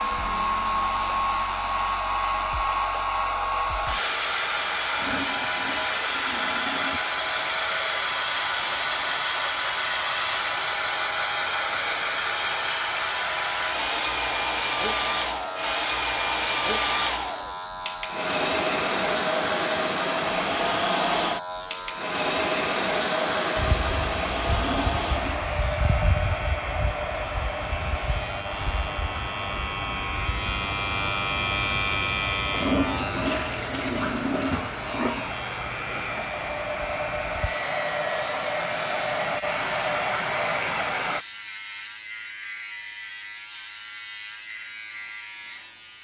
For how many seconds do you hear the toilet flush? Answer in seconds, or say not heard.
6 s.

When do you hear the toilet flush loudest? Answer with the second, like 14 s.
33 s.